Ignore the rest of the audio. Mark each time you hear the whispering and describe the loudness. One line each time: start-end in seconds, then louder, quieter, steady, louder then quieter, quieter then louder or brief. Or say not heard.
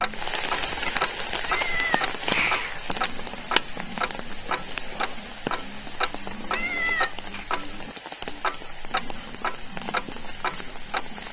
not heard.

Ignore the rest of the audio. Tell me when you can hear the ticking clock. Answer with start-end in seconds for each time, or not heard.
0.0-11.2.